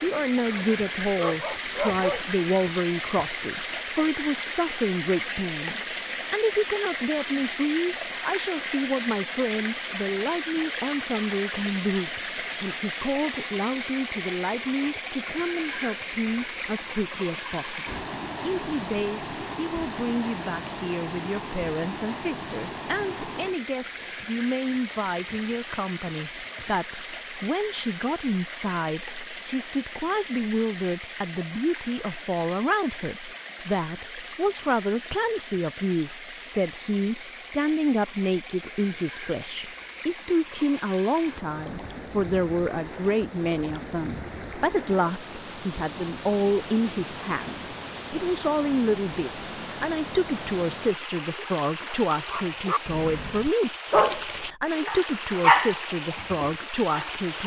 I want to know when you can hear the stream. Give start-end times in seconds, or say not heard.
0.0-57.4.